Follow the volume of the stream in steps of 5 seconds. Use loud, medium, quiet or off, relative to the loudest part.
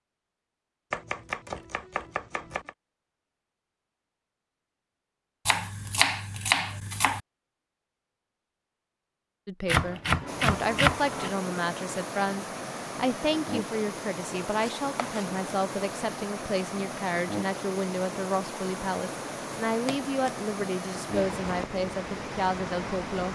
off, off, loud, loud, loud.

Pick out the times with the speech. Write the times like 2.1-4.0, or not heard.
9.4-23.3.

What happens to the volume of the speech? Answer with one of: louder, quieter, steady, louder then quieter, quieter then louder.
steady.